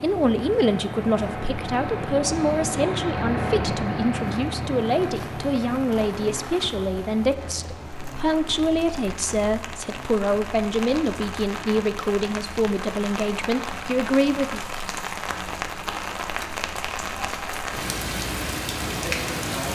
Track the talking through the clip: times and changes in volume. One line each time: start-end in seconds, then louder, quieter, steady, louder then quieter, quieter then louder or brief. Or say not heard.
0.0-14.6 steady.